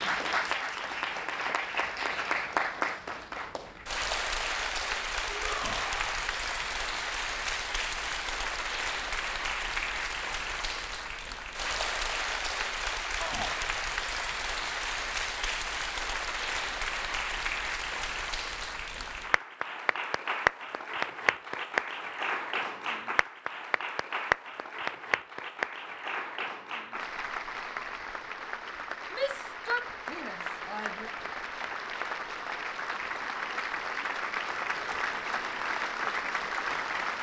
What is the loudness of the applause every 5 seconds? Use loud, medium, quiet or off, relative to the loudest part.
loud, loud, loud, loud, loud, medium, loud, loud.